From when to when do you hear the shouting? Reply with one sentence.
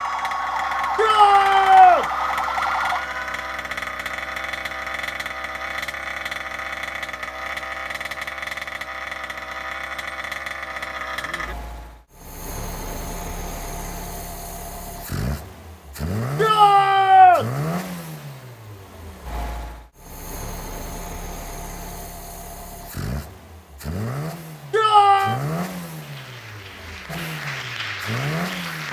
The shouting can be heard from 0.9 to 2.0 s, from 16.4 to 17.4 s and from 24.7 to 25.4 s.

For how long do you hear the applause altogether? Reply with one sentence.
The applause can be heard for 3 seconds in total.